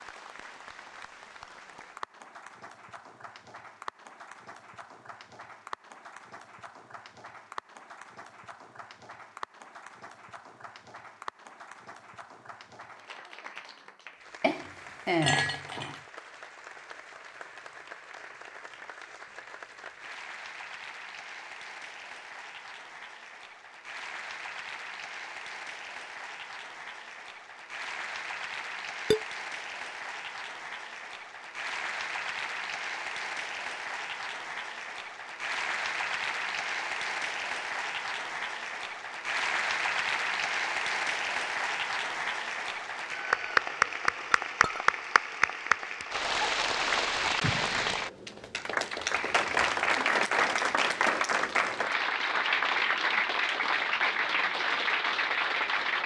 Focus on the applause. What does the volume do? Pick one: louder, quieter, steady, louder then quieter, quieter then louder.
louder.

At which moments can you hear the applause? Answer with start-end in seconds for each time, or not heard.
0.0-56.0.